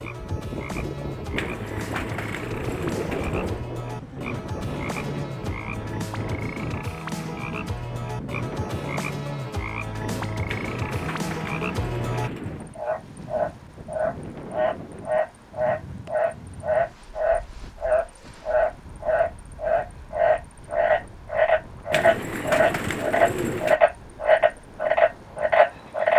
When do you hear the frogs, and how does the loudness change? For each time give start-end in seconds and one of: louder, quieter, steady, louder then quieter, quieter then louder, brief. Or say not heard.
0.0-26.1 louder.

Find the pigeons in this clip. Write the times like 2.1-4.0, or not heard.
1.4-3.6, 10.4-12.7, 21.9-23.8.